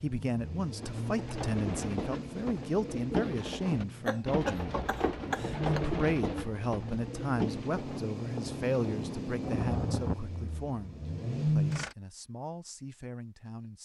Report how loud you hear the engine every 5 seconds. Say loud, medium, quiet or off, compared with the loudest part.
medium, medium, loud.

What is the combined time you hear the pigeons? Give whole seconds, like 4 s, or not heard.
7 s.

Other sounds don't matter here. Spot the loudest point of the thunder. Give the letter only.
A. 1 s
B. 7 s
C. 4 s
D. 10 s
D.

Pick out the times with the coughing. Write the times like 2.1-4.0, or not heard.
4.0-5.8.